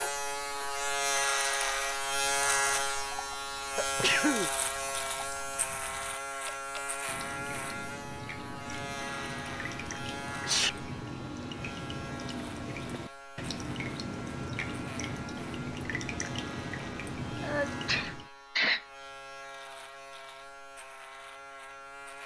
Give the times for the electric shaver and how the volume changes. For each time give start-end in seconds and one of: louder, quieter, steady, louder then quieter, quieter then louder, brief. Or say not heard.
0.0-22.2 quieter.